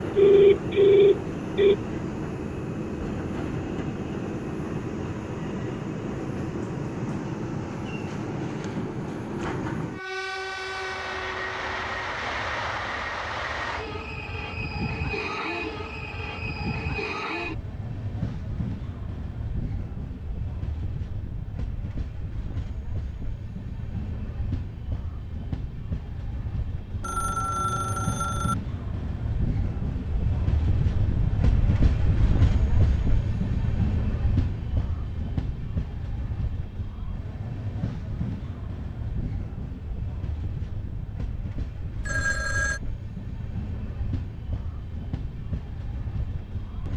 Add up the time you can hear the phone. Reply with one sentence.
The phone can be heard for 4 seconds in total.